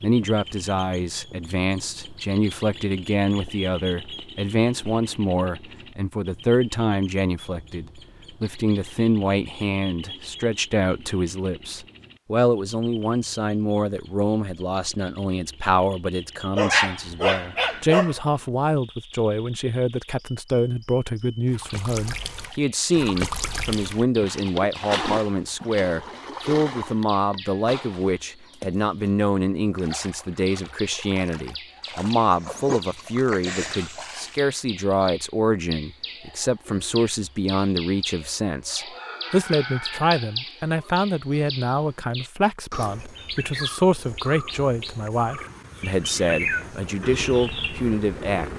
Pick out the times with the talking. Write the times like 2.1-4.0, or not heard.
0.0-48.5.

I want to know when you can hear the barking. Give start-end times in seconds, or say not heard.
16.6-18.2.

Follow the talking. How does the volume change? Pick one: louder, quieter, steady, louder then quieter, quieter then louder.
steady.